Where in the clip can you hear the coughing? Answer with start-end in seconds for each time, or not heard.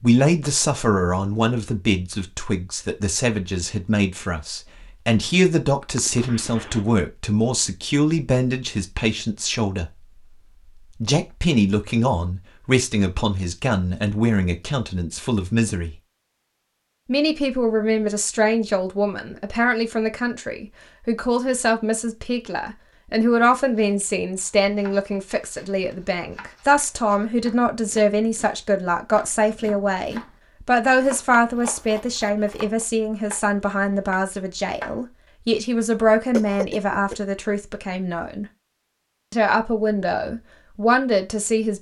6.0-6.8, 36.3-37.1.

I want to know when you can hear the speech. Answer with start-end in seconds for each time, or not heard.
0.0-9.9, 11.0-15.9, 17.1-38.5, 39.3-41.7.